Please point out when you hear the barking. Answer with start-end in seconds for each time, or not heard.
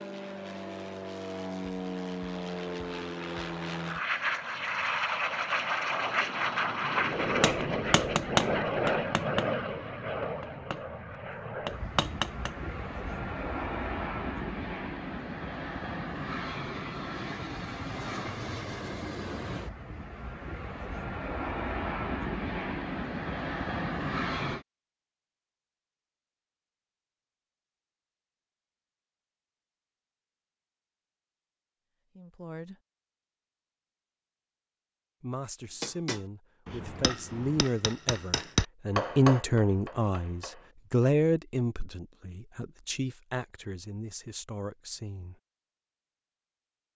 not heard.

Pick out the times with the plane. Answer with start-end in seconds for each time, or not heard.
0.0-24.6.